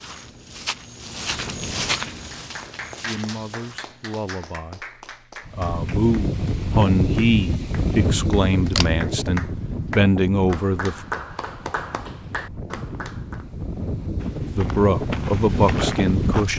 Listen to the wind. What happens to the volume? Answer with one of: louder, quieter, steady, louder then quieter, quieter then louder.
quieter then louder.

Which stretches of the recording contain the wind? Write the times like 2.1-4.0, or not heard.
5.5-16.5.